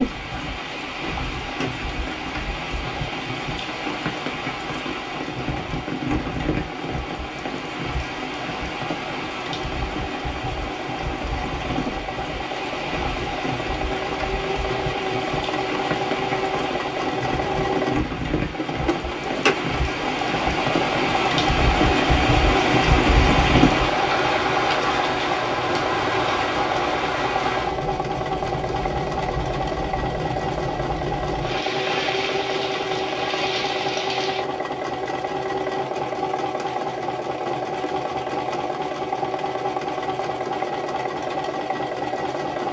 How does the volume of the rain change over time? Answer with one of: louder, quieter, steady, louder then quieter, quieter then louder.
louder then quieter.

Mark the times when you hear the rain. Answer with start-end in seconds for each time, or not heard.
0.0-34.5.